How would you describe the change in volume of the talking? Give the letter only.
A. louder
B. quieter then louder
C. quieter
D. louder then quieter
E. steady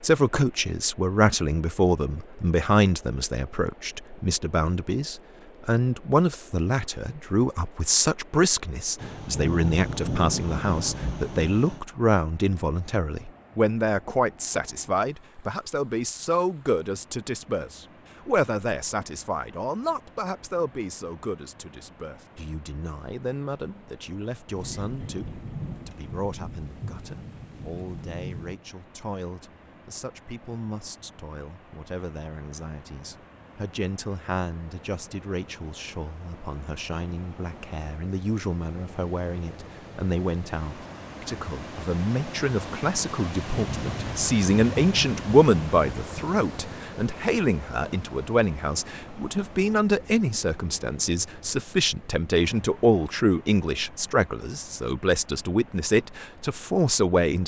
B.